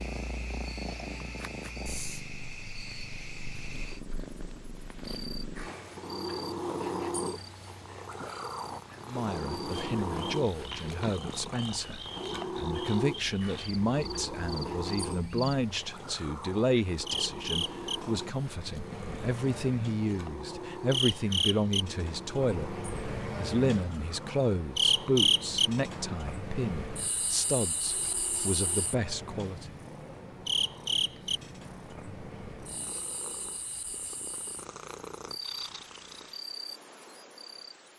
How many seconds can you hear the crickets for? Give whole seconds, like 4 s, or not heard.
38 s.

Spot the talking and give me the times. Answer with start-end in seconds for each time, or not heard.
9.1-29.6.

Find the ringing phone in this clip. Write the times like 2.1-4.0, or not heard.
not heard.